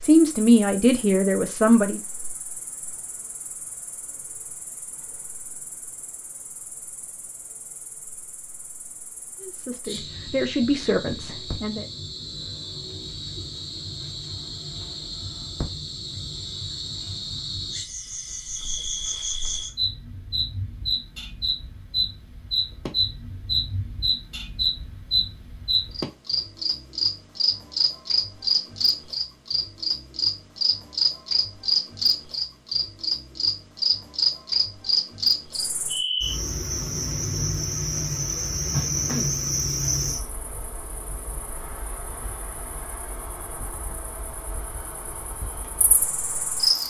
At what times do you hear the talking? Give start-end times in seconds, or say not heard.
0.0-2.0, 9.4-11.8.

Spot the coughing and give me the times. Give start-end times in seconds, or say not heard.
not heard.